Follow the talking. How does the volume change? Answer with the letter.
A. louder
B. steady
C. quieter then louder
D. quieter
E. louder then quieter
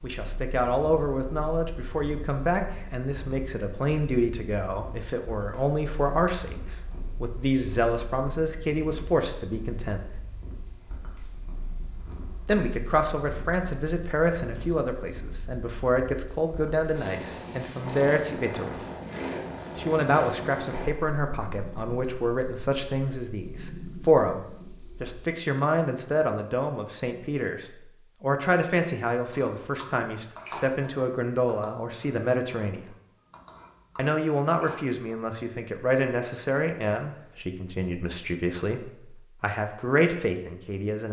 B.